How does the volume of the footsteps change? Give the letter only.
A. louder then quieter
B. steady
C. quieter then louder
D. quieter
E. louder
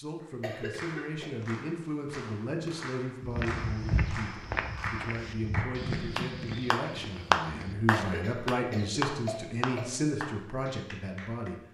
D.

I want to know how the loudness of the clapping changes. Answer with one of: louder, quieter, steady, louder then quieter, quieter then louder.
louder then quieter.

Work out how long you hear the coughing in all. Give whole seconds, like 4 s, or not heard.
3 s.